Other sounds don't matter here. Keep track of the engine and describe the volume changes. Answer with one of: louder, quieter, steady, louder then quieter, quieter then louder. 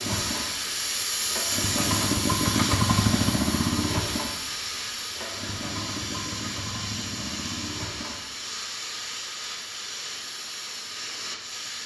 louder then quieter.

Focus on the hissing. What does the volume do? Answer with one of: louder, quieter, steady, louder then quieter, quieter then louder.
quieter.